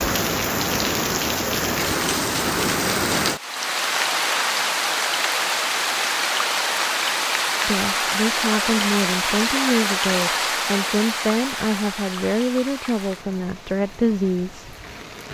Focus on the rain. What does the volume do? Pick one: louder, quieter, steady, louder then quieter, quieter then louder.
quieter.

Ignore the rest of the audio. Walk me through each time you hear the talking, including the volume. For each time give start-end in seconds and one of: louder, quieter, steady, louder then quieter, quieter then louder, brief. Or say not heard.
7.7-14.7 steady.